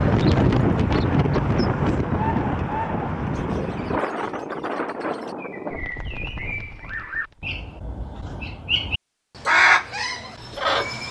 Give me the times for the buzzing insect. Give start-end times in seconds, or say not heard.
not heard.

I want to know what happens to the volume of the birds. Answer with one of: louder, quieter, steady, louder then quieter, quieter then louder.
quieter then louder.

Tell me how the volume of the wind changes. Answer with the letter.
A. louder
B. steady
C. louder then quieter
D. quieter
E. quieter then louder
D.